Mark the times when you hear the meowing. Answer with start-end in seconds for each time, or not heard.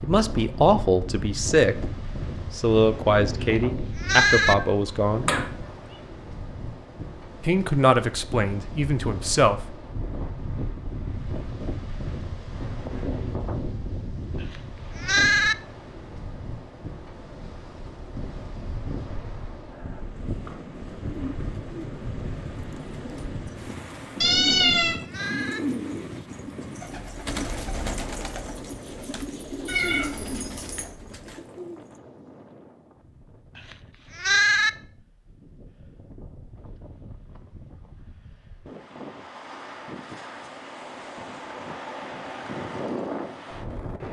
4.6-5.5, 24.2-25.0, 29.6-30.9.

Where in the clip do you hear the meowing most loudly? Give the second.
25 s.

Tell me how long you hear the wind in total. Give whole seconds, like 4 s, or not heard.
44 s.